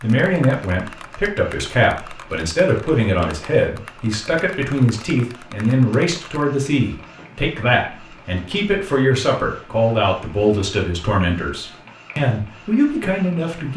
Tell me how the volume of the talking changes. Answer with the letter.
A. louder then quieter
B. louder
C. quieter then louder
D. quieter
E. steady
E.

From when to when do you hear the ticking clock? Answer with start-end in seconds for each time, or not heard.
not heard.